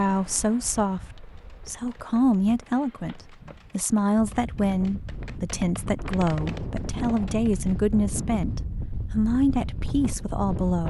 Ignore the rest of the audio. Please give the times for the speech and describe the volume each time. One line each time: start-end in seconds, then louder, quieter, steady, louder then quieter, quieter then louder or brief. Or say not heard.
0.0-10.8 steady.